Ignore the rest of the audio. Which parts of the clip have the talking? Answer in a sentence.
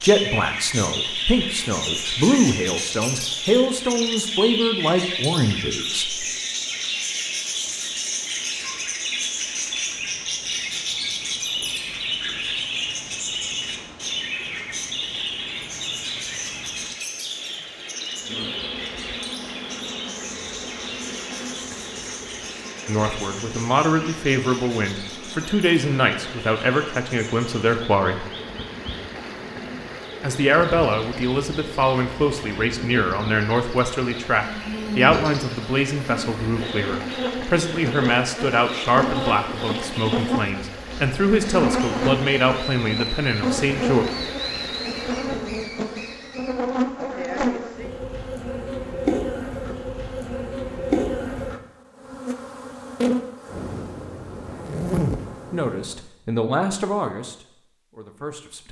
The talking can be heard from 0.0 to 6.2 s, from 22.9 to 28.2 s, from 30.2 to 44.0 s and from 55.5 to 58.6 s.